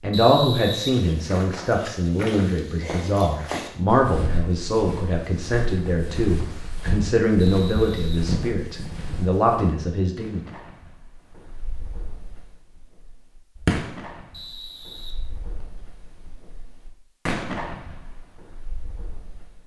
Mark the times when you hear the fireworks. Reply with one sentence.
You can hear the fireworks from 10.2 to 19.6 s.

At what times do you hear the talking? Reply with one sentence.
The talking can be heard from 0.0 to 10.4 s.